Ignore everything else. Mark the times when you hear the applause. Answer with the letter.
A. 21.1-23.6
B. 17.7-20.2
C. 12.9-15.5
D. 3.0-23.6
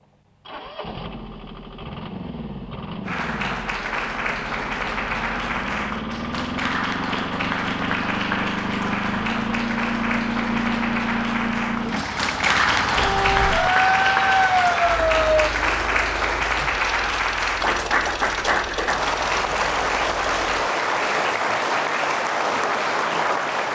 D.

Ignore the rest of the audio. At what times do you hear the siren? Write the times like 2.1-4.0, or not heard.
12.9-15.5.